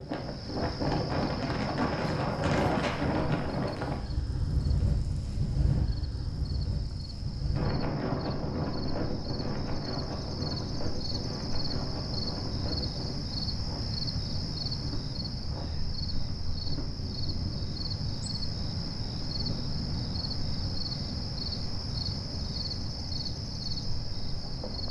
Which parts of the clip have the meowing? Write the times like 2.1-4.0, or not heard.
not heard.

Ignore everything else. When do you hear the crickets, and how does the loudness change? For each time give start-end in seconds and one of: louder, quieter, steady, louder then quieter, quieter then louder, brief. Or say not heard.
0.0-24.8 louder.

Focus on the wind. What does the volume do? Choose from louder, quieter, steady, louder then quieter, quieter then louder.
quieter.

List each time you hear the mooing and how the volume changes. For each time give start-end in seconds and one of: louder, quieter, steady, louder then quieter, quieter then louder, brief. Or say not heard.
not heard.